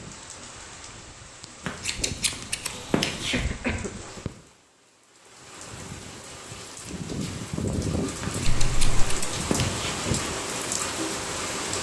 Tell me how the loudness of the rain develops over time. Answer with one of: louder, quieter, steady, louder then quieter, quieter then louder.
louder.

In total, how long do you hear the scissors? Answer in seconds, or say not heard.
4 s.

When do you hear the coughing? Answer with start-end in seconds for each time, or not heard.
3.1-3.9, 8.4-9.2.